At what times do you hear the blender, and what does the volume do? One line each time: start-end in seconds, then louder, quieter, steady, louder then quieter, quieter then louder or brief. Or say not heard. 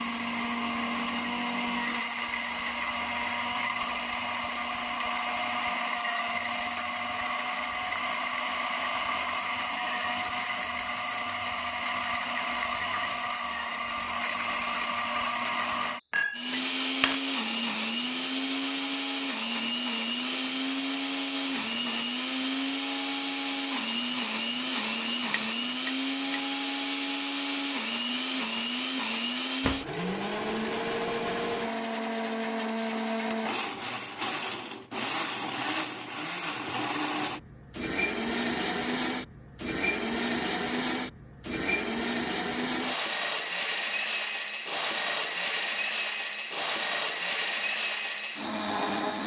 0.0-49.2 steady.